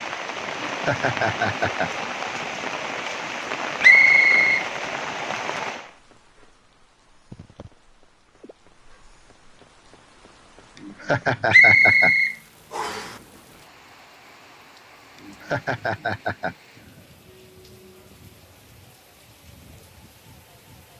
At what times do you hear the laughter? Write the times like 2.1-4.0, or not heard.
0.5-1.9, 10.8-12.2, 15.2-16.6.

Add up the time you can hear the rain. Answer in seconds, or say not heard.
21 s.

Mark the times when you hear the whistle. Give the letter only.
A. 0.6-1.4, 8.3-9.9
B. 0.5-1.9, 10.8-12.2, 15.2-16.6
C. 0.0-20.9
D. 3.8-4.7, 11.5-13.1
D.